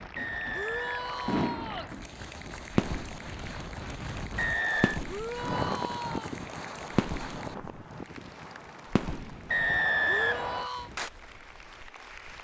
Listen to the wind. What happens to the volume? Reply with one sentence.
The loudness of the wind goes up, then down.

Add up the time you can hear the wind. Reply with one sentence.
You can hear the wind for 12 seconds altogether.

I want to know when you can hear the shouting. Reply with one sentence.
You can hear the shouting from 0.5 to 1.9 s, from 5.0 to 6.3 s and from 10.1 to 10.9 s.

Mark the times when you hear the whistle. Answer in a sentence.
The whistle can be heard from 0.1 to 1.9 s, from 4.3 to 5.0 s and from 9.5 to 10.7 s.